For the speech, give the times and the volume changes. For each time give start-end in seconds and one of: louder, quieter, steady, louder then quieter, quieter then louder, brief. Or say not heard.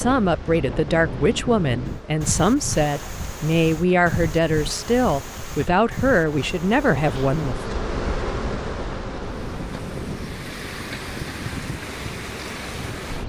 0.0-7.8 steady.